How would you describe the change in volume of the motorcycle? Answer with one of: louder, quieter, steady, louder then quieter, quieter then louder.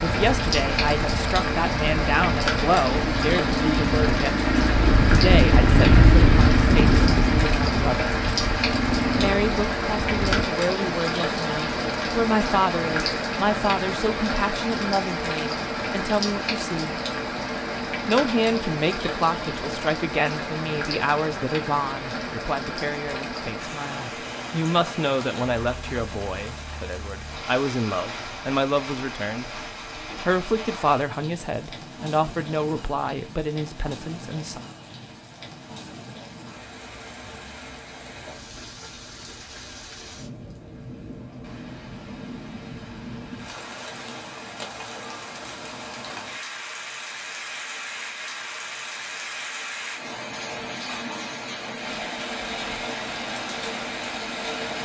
louder then quieter.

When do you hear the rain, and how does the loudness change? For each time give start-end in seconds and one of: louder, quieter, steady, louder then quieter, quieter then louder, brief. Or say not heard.
0.0-54.8 quieter then louder.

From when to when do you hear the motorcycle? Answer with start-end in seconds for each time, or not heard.
0.0-10.4.